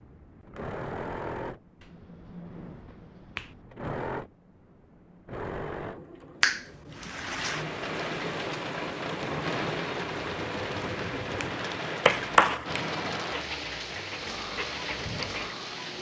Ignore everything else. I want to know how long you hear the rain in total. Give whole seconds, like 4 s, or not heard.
9 s.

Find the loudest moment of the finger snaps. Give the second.
12 s.